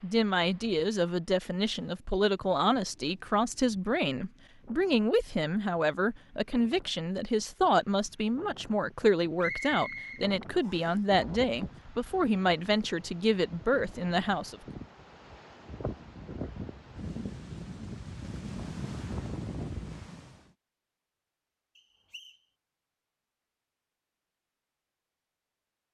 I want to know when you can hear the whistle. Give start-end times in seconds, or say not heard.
9.4-11.1, 21.8-22.4.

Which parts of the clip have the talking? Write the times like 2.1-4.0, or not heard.
0.0-14.6.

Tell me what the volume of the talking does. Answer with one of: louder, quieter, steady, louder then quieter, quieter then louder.
steady.